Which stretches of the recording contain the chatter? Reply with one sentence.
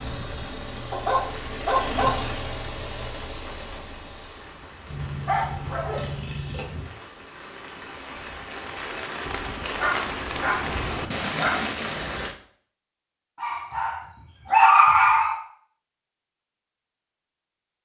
You can't hear the chatter here.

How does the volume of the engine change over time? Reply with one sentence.
The loudness of the engine goes up, then down.